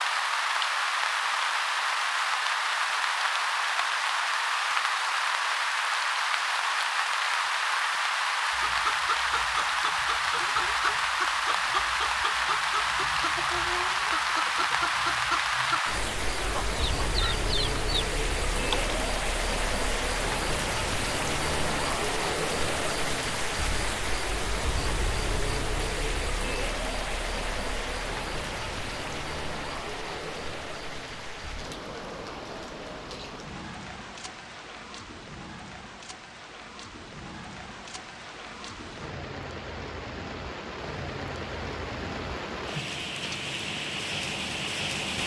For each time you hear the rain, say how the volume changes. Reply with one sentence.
The rain can be heard from 0.0 to 45.2 s, getting quieter.